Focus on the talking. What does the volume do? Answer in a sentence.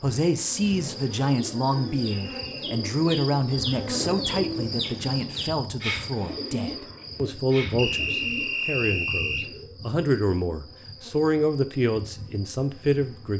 The volume of the talking stays about the same.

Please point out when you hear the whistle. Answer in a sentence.
You can hear the whistle from 2.0 to 2.7 s and from 7.8 to 9.5 s.